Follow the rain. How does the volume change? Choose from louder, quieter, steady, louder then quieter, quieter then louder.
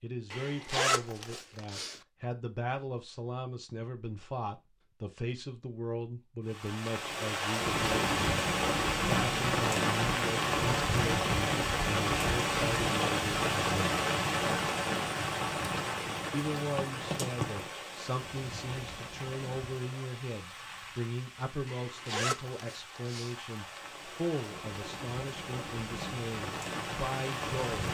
quieter then louder.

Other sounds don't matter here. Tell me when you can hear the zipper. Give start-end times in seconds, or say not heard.
0.3-2.0, 21.6-23.4.